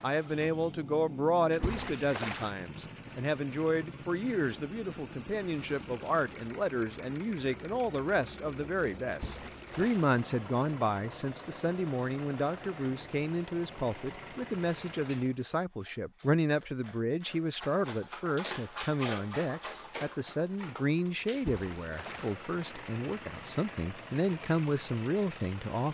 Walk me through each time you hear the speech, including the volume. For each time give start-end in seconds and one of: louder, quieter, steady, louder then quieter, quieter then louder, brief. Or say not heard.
0.0-25.8 steady.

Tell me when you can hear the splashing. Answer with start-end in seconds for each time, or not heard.
1.5-2.5, 9.1-10.1, 21.4-22.4.